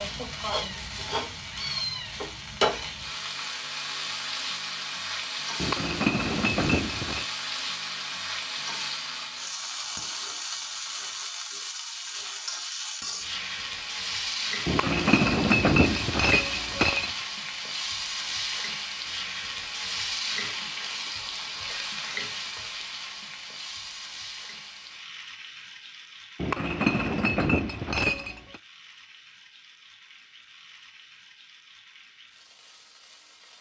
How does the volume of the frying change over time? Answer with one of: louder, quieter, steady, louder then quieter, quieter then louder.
quieter.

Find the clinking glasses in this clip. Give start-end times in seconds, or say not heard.
5.5-7.2, 14.7-17.1, 26.4-28.6.